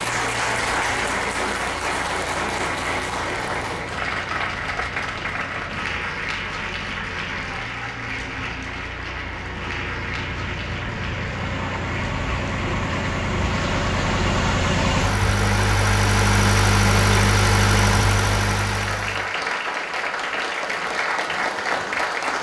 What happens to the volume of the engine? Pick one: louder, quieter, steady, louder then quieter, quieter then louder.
louder.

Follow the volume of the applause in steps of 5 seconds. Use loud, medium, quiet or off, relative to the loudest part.
loud, medium, medium, loud, loud.